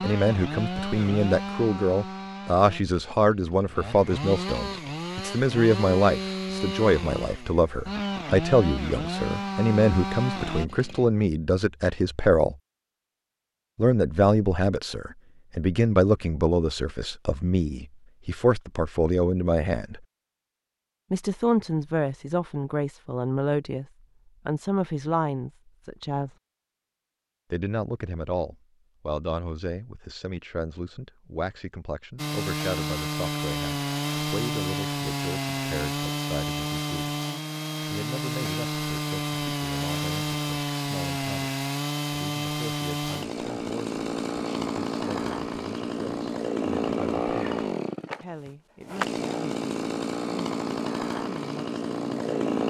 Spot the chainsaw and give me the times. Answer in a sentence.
You can hear the chainsaw from 0.0 to 11.1 s and from 32.1 to 52.6 s.